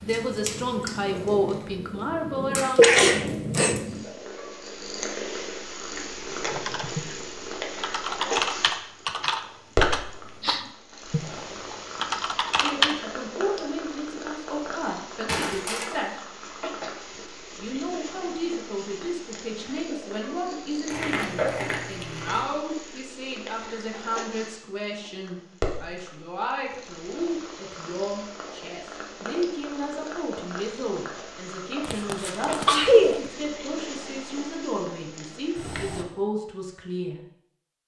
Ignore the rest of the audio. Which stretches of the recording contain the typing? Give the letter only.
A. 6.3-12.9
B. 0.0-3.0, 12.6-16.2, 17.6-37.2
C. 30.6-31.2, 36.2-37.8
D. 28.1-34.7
A.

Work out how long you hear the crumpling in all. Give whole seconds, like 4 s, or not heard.
2 s.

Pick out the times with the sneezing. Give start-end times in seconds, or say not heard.
2.6-3.8, 31.8-33.2.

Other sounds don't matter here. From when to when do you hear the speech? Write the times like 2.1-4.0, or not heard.
0.0-3.0, 12.6-16.2, 17.6-37.2.